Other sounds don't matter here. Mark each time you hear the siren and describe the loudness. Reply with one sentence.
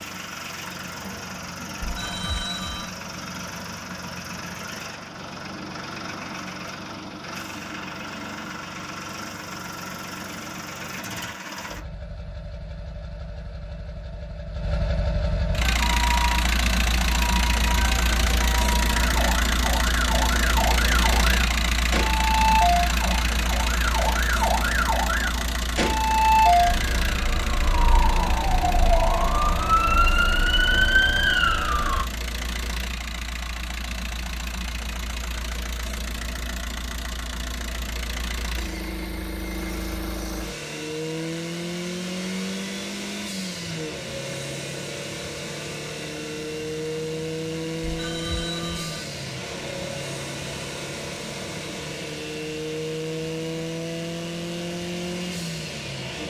The siren can be heard from 15.8 to 32.0 s, getting louder.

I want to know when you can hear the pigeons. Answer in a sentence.
You can't hear the pigeons here.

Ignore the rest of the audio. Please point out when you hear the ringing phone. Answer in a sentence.
You can hear the ringing phone from 1.8 to 3.0 s and from 47.8 to 49.0 s.